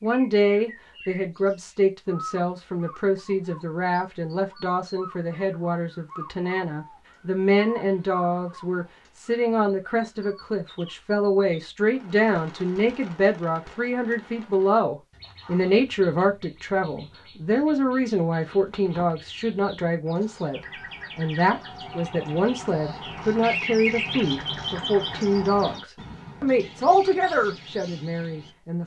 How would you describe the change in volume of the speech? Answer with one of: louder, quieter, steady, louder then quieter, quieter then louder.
steady.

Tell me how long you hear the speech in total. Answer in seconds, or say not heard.
29 s.